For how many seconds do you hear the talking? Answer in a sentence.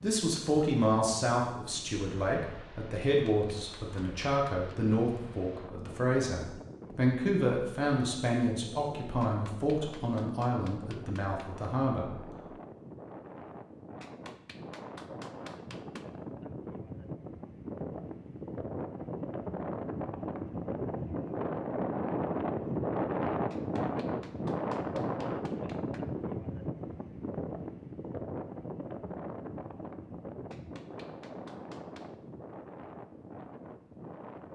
The talking can be heard for 12 seconds in total.